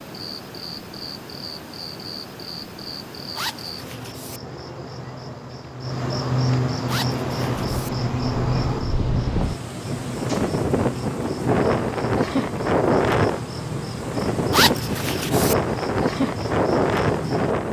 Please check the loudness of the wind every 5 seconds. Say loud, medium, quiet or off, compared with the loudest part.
off, medium, loud, loud.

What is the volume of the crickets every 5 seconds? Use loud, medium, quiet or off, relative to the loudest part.
medium, loud, medium, medium.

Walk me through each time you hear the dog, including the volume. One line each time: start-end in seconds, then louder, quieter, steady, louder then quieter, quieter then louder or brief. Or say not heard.
not heard.